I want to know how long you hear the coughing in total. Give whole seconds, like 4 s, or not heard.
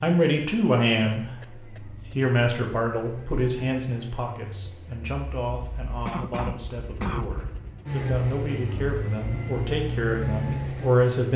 3 s.